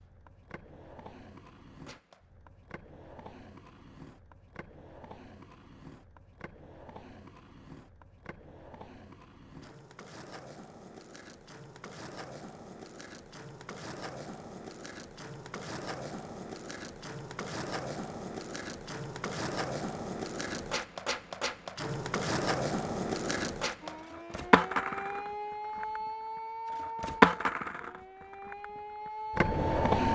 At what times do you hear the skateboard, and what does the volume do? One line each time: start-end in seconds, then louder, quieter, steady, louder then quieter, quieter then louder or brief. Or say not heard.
0.0-30.1 louder.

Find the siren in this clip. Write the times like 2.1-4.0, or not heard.
23.8-29.9.